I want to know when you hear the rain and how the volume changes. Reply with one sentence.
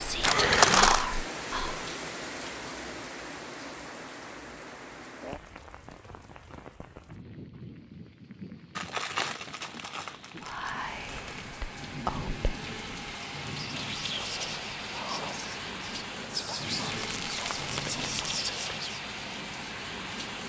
The rain can be heard from 0.0 to 20.4 s, getting quieter then louder.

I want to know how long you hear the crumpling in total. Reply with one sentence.
You can hear the crumpling for 5 seconds altogether.